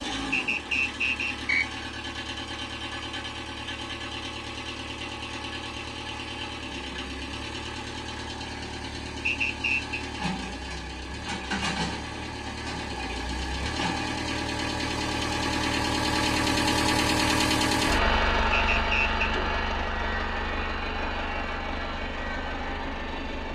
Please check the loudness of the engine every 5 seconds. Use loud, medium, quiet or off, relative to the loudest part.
medium, medium, medium, loud, medium.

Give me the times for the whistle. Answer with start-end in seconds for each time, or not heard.
0.3-1.6, 9.2-10.0, 18.5-19.3.